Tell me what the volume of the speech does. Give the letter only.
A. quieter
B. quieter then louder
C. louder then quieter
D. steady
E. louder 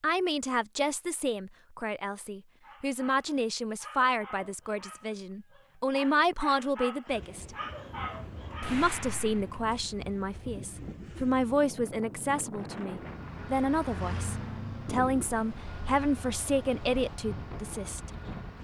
D.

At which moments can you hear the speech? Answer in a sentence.
The speech can be heard from 0.0 to 7.5 s and from 8.7 to 18.1 s.